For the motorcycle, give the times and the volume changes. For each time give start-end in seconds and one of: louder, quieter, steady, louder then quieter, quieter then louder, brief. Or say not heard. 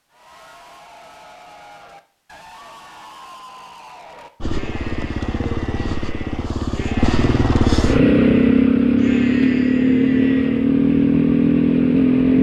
4.4-12.3 louder.